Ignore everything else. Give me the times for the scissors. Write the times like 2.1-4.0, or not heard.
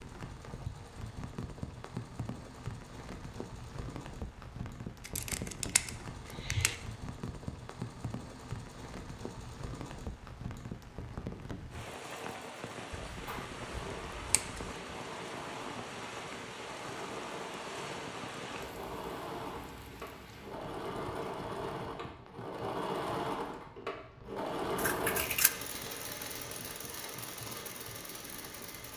5.0-6.8, 12.9-14.8, 24.8-25.5.